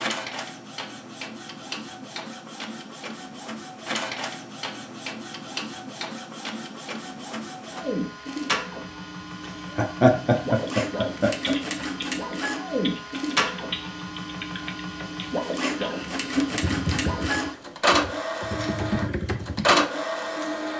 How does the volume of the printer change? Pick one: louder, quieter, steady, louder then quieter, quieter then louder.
louder.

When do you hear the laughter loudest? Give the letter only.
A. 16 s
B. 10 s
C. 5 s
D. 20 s
B.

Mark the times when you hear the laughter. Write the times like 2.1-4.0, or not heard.
9.8-11.6.